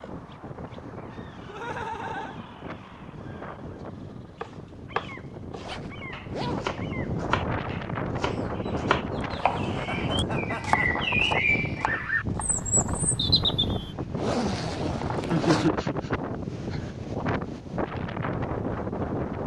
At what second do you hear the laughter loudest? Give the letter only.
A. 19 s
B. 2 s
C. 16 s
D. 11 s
C.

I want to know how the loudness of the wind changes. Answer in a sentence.
The loudness of the wind goes up.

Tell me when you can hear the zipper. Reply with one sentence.
You can hear the zipper from 5.5 to 6.8 s and from 14.2 to 15.7 s.